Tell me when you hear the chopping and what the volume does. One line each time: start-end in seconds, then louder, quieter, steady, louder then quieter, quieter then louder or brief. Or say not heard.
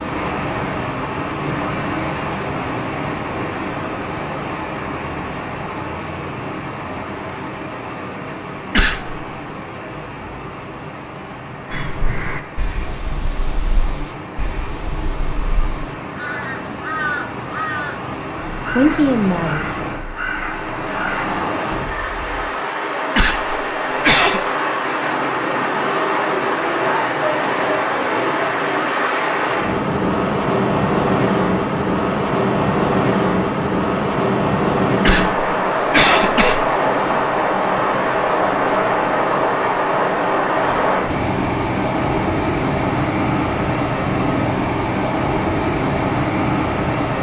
not heard.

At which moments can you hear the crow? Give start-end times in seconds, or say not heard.
11.7-22.5.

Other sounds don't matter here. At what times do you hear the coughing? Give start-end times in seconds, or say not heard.
8.7-9.2, 23.1-24.4, 35.0-36.6.